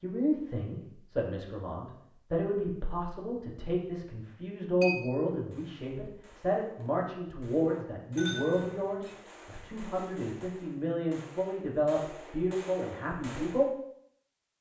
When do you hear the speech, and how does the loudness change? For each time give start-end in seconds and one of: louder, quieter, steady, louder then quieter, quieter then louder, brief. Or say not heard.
0.0-13.7 steady.